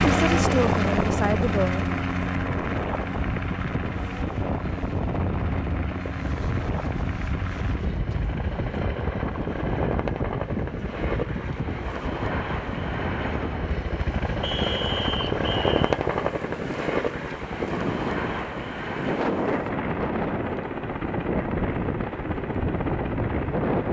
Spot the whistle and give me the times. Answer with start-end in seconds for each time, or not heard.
14.4-15.8.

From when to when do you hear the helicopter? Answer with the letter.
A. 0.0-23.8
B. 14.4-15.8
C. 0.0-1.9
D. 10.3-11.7
A.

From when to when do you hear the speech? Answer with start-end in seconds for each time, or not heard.
0.0-1.9.